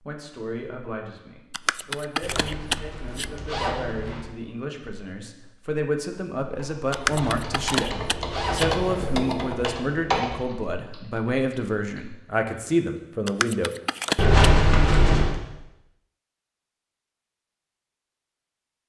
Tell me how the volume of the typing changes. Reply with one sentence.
The volume of the typing goes up, then down.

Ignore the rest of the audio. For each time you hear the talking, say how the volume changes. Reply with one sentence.
You can hear the talking from 0.0 to 13.7 s, getting louder.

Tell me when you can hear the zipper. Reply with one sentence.
The zipper can be heard from 2.2 to 4.2 s, from 7.0 to 9.1 s and from 14.2 to 15.3 s.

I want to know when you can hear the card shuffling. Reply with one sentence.
You can hear the card shuffling from 1.5 to 3.3 s, from 6.9 to 8.7 s and from 13.2 to 14.3 s.